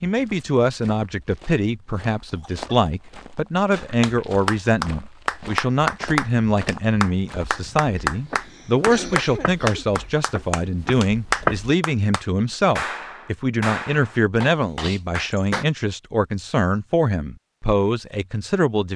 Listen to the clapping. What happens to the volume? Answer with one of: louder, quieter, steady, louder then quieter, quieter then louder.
quieter.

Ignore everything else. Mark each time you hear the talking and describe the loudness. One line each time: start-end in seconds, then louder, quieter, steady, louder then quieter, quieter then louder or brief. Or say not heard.
0.0-18.9 steady.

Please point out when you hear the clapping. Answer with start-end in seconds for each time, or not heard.
3.8-15.7.